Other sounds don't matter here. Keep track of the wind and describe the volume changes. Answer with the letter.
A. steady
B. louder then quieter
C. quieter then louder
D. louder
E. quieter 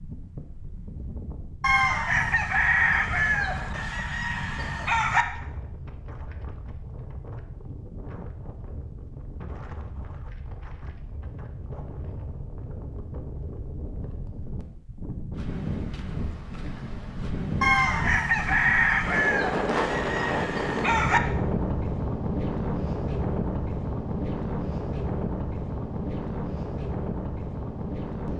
D.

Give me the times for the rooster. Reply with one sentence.
You can hear the rooster from 1.6 to 5.2 s and from 17.6 to 21.2 s.